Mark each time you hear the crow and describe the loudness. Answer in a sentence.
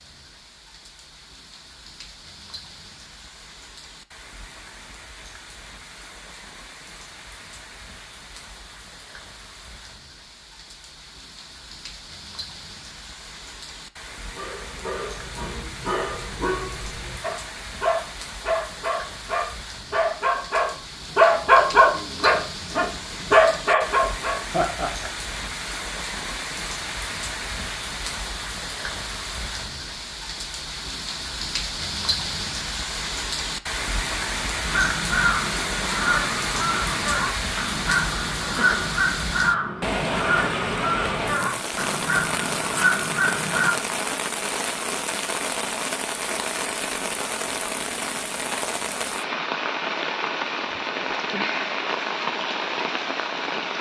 You can hear the crow from 34.6 to 43.8 s, at a steady volume.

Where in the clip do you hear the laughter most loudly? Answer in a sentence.
The loudest moment of the laughter is at 25 seconds.